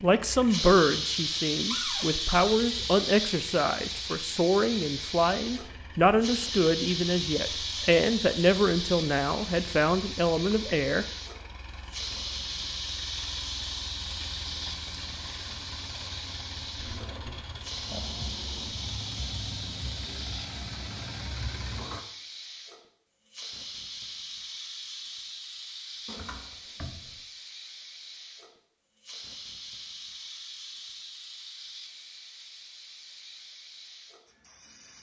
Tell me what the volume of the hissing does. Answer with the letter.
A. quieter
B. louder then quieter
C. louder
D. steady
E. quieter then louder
A.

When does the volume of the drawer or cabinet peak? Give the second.
2 s.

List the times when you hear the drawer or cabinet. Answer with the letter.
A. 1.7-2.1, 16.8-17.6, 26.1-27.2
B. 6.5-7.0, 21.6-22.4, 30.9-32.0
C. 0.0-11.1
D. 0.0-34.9
A.